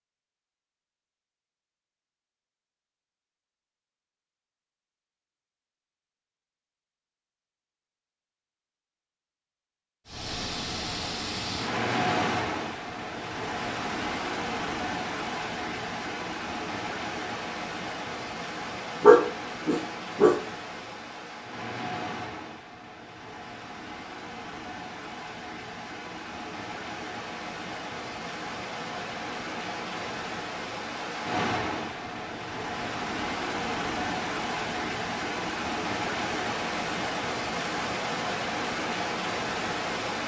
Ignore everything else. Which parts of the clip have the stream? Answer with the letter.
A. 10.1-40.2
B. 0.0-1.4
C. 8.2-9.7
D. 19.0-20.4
A.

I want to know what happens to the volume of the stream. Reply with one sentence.
The volume of the stream goes down, then up.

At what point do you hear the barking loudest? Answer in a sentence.
The loudest moment of the barking is at 19 seconds.